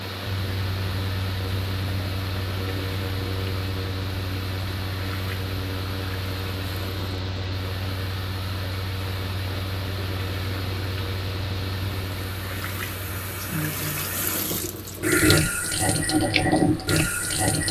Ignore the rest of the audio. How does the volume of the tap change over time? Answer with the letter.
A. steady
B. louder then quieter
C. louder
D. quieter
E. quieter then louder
C.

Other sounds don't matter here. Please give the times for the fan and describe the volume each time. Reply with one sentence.
The fan can be heard from 0.0 to 17.4 s, getting quieter.